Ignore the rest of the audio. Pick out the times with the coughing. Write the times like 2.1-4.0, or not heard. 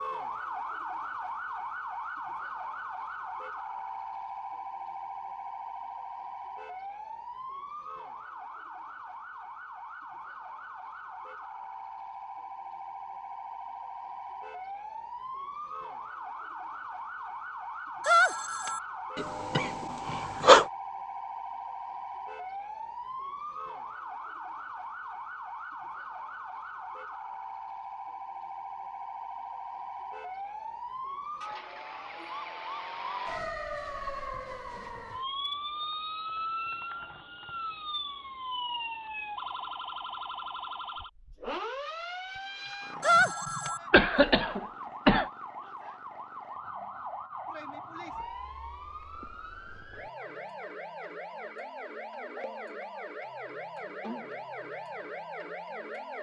19.1-20.6, 43.1-45.2.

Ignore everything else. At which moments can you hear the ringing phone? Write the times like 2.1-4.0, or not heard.
18.0-18.8, 43.0-43.8.